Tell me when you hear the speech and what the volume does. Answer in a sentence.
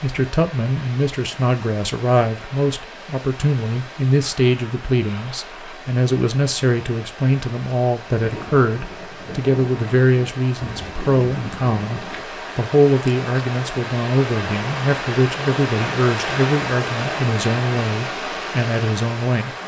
The speech can be heard from 0.0 to 19.5 s, at a steady volume.